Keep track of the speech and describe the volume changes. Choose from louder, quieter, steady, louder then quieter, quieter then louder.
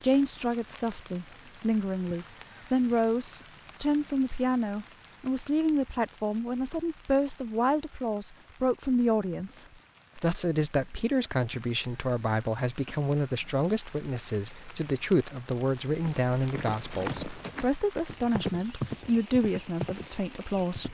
steady.